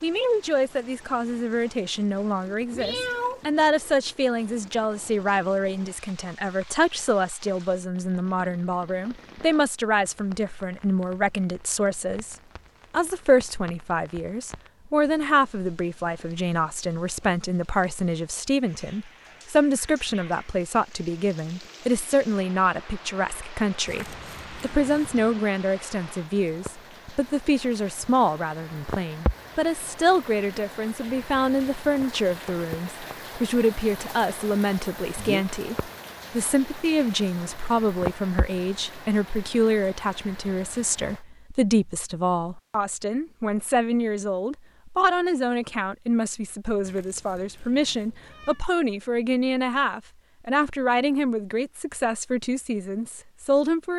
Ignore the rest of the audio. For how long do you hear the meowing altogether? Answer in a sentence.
You can hear the meowing for 4 seconds altogether.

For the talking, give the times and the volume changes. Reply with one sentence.
The talking can be heard from 0.0 to 53.9 s, at a steady volume.